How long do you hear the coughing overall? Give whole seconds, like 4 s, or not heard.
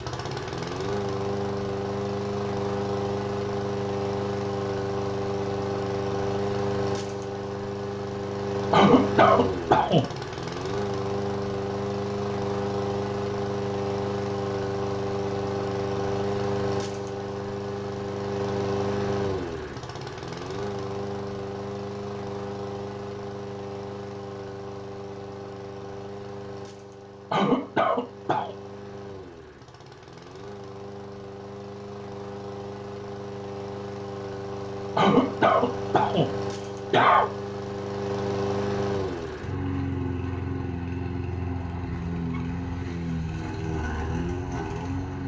5 s.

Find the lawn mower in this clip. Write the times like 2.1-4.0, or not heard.
0.0-45.2.